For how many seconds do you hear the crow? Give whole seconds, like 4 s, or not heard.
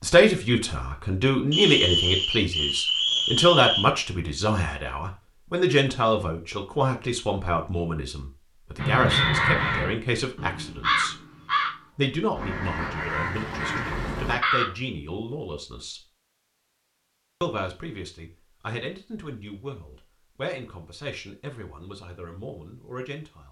6 s.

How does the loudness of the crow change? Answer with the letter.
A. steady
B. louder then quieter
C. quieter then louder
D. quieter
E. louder
D.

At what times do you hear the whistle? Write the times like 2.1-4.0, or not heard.
1.5-4.0.